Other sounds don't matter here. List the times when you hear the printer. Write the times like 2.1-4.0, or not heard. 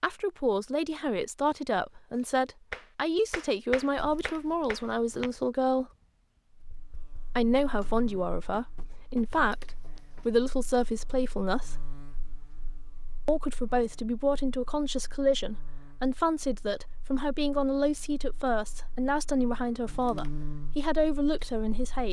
not heard.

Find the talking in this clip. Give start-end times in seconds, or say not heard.
0.0-5.8, 7.3-11.8, 13.2-22.0.